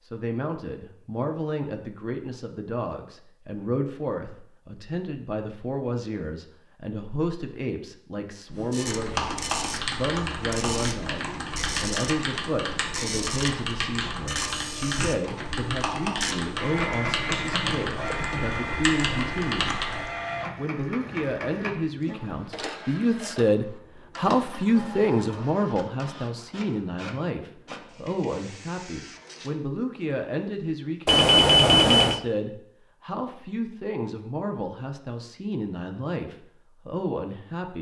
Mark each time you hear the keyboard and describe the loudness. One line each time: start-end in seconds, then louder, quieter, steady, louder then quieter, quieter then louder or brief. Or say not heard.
8.8-20.1 steady.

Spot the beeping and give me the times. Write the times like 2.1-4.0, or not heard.
31.1-32.2.